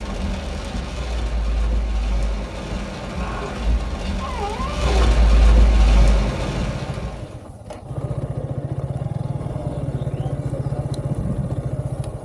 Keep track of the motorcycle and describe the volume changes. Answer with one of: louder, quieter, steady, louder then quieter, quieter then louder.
louder.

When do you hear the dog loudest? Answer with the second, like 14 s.
5 s.